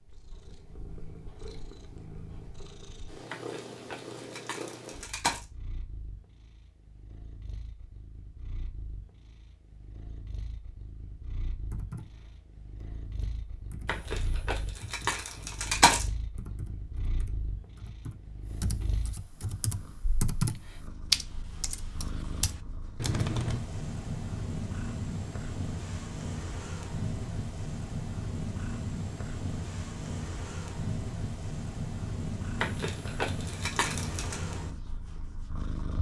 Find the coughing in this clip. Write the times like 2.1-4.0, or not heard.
not heard.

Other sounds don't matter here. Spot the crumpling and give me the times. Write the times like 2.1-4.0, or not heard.
3.3-5.5, 13.8-16.1, 32.6-34.4.